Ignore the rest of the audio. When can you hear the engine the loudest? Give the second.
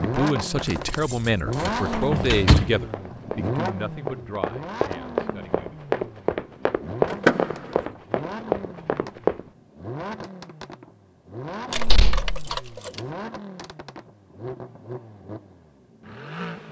2 s.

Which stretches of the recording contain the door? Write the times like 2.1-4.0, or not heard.
1.9-2.8, 7.1-7.5, 11.8-12.3.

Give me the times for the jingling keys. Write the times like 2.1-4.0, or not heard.
0.6-2.4, 11.7-13.1.